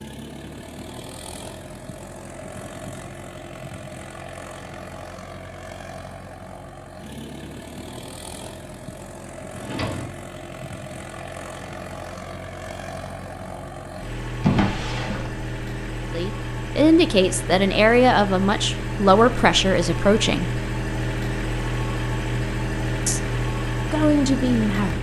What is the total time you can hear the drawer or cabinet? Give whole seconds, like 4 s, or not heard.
2 s.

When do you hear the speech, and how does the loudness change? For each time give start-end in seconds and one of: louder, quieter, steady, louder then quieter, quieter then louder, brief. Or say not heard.
16.1-20.6 steady
23.1-24.9 brief.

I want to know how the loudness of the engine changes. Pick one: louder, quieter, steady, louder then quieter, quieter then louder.
louder.